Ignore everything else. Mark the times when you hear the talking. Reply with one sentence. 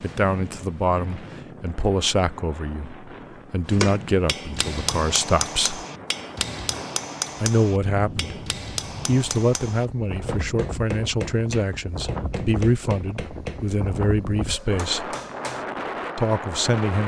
You can hear the talking from 0.0 to 5.8 s, from 7.4 to 8.3 s, from 9.1 to 15.2 s and from 16.1 to 17.0 s.